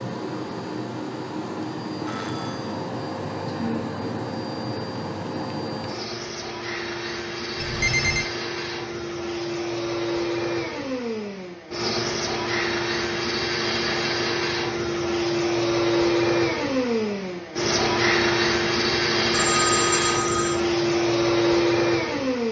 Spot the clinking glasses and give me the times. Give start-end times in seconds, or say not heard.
not heard.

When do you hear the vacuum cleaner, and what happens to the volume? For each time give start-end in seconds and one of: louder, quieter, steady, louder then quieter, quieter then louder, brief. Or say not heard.
0.0-22.4 louder.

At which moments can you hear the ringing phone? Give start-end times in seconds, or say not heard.
2.0-2.7, 7.6-8.3, 19.3-20.6.